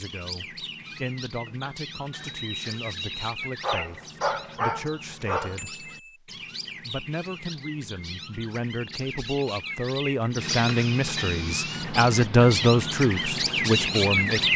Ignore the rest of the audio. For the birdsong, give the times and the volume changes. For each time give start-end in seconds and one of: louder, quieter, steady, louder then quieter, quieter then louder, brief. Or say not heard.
0.0-14.5 louder.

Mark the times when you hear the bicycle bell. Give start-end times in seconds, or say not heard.
1.4-3.1, 5.5-6.2, 10.5-11.4.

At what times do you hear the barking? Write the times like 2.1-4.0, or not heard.
3.6-5.6.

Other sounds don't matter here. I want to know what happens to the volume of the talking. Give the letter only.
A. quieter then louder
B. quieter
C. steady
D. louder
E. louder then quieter
D.